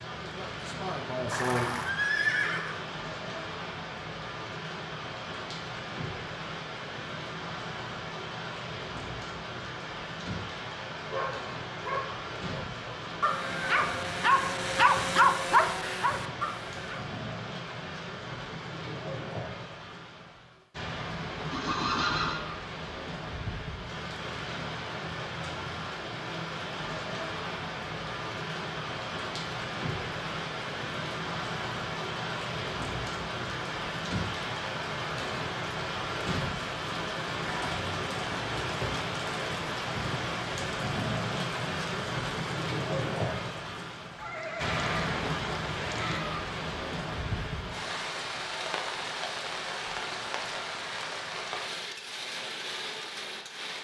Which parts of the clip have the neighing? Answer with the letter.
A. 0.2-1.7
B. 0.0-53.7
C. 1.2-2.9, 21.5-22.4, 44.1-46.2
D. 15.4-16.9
C.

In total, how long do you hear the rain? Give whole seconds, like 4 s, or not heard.
54 s.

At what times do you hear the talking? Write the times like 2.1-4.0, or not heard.
0.2-1.7.